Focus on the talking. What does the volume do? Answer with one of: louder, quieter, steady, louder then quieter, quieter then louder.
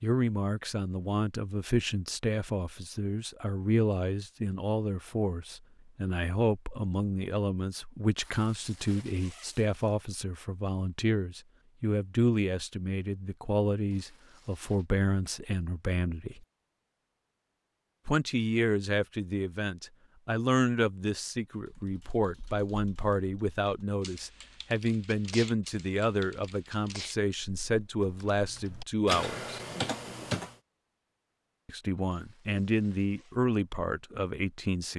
steady.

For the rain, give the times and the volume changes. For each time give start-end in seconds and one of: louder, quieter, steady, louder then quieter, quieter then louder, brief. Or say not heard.
not heard.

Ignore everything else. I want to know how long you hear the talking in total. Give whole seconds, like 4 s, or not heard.
31 s.